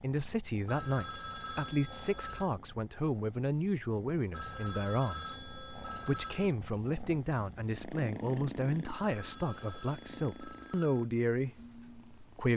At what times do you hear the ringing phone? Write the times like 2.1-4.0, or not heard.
0.7-2.5, 4.3-6.5, 8.9-11.1.